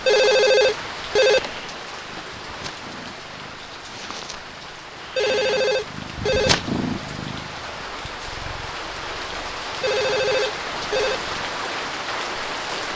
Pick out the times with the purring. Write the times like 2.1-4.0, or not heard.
0.0-11.5.